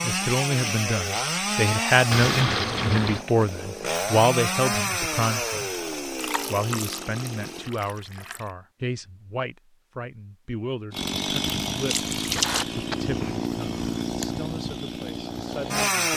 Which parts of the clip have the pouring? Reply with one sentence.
You can hear the pouring from 2.1 to 3.2 s, from 6.2 to 8.4 s and from 11.9 to 12.7 s.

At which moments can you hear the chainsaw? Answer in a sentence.
The chainsaw can be heard from 0.0 to 7.7 s and from 10.9 to 16.1 s.